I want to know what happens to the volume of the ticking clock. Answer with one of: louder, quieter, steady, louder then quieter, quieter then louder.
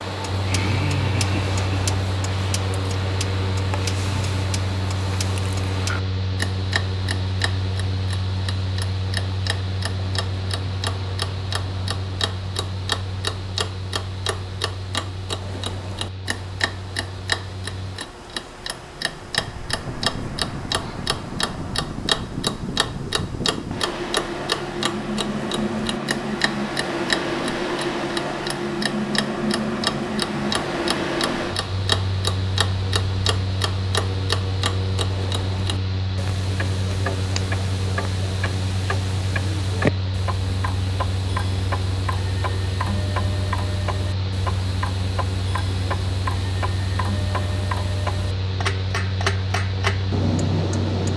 steady.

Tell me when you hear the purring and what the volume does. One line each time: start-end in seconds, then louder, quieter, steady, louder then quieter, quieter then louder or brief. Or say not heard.
not heard.